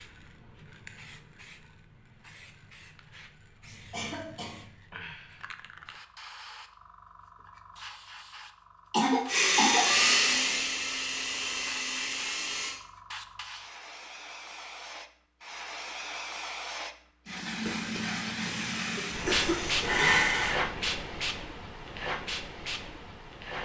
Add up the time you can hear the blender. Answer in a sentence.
The blender can be heard for 6 seconds in total.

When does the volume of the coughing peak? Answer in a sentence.
The volume of the coughing peaks at 9 seconds.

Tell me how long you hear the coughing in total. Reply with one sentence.
You can hear the coughing for 4 seconds altogether.